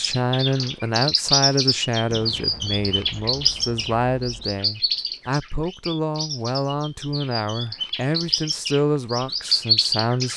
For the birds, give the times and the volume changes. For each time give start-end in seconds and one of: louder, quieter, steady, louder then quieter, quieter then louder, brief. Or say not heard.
0.0-10.3 quieter then louder.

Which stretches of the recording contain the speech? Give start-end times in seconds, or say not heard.
0.0-10.3.